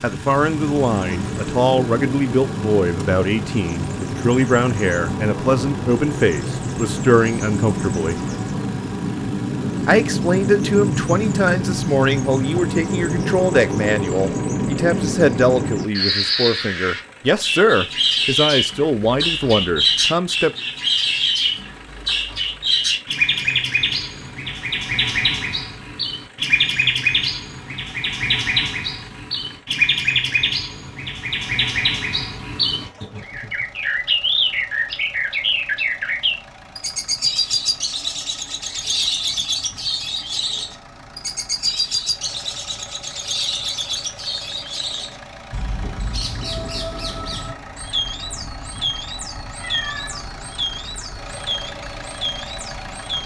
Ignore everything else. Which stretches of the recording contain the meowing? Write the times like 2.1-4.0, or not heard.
49.4-50.2.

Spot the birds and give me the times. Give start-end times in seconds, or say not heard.
0.0-53.2.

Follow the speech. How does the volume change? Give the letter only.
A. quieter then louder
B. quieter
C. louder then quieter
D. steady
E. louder
D.